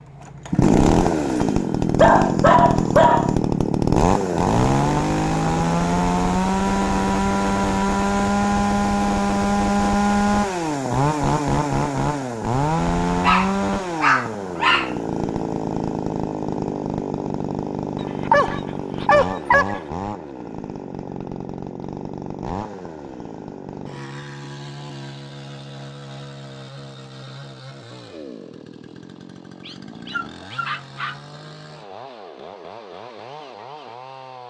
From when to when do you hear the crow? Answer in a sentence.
You can't hear the crow here.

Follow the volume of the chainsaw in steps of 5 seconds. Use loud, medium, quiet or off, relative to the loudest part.
loud, loud, loud, medium, quiet, quiet, quiet.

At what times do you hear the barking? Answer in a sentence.
The barking can be heard from 1.9 to 3.4 s, from 13.2 to 14.9 s, from 18.2 to 19.8 s and from 29.6 to 31.2 s.